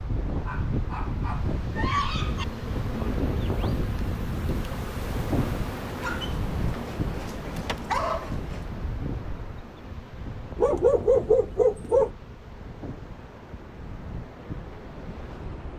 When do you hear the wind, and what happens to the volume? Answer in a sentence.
The wind can be heard from 0.0 to 15.7 s, getting quieter.